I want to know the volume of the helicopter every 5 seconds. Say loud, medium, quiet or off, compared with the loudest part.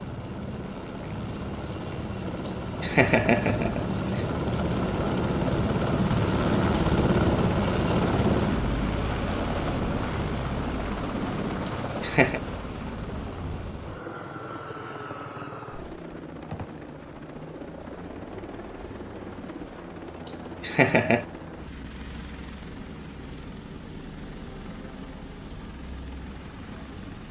medium, loud, medium, quiet, quiet, quiet.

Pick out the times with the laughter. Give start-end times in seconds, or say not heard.
2.5-4.2, 11.7-12.4, 20.2-21.2.